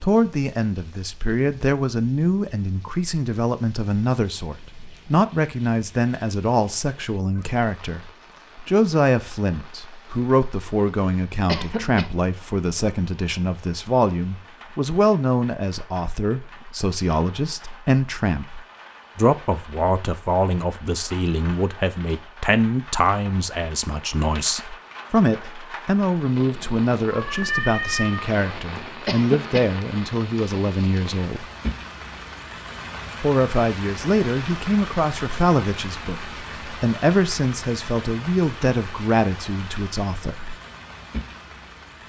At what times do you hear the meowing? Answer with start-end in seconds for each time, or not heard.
27.1-28.2.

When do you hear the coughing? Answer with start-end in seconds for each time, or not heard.
11.4-12.1, 29.1-29.7.